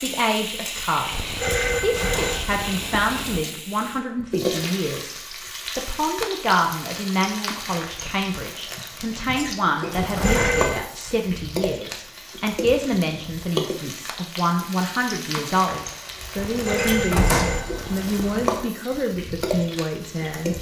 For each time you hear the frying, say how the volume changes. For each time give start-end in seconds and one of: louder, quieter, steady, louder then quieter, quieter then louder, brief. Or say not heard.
0.0-20.5 steady.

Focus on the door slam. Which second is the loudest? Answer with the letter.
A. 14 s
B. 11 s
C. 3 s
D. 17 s
D.